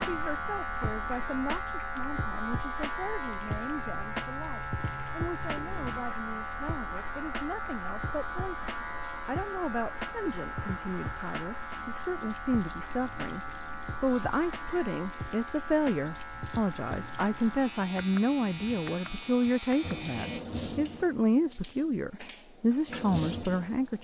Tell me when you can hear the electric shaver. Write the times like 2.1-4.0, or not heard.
0.0-20.4.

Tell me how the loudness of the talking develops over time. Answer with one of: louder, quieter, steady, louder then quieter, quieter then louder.
louder.